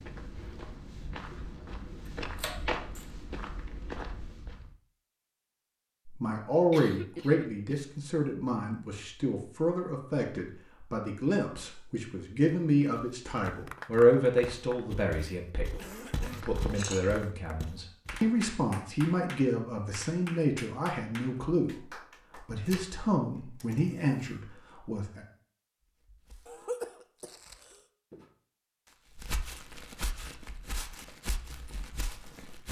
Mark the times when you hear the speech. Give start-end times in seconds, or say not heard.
6.0-25.2.